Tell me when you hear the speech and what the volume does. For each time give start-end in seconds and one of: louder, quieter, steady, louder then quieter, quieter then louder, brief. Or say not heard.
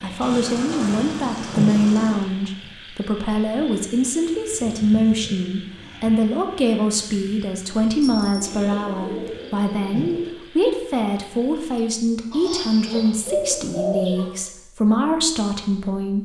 0.0-16.2 steady.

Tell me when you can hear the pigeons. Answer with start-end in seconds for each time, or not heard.
0.2-2.2, 4.3-6.0, 8.3-10.4, 12.3-14.3.